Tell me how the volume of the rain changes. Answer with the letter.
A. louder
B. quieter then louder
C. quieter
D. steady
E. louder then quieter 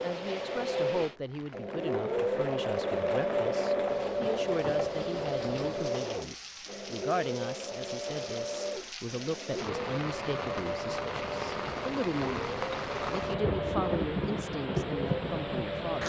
A.